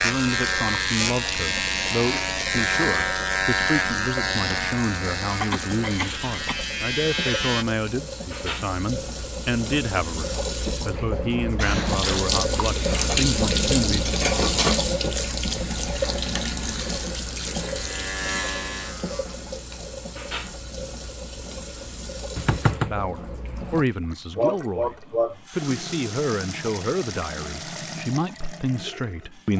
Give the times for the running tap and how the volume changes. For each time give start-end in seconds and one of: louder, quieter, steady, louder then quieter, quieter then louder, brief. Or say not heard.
0.0-29.5 louder then quieter.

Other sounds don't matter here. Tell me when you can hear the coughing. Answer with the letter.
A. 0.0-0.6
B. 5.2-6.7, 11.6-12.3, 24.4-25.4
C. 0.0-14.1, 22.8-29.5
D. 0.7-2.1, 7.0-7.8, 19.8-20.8
B.